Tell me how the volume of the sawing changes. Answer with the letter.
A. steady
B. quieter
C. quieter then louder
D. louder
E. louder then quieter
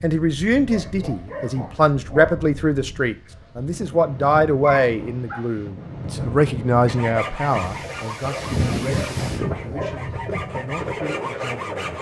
C.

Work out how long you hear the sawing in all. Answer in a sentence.
The sawing can be heard for 5 seconds in total.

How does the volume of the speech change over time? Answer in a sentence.
The loudness of the speech goes down.